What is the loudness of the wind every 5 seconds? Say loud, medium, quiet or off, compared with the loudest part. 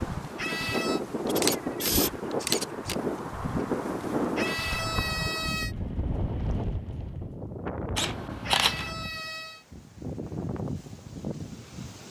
loud, medium, medium.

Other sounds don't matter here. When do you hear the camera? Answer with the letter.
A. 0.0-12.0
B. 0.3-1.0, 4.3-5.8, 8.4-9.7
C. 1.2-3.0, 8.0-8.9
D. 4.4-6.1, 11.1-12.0
C.